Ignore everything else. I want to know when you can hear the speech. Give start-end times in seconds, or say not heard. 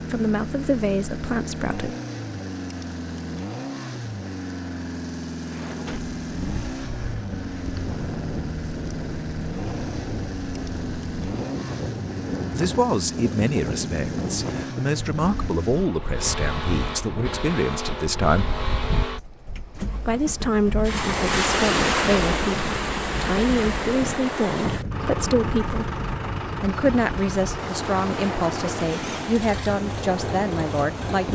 0.0-1.9, 12.5-18.6, 20.0-25.9, 26.6-31.3.